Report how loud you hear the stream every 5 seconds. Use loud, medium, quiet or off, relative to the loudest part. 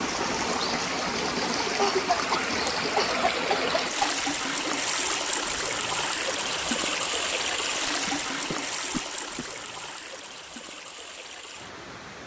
loud, loud, quiet.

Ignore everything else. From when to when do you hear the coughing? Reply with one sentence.
The coughing can be heard from 1.8 to 4.2 s and from 8.1 to 9.4 s.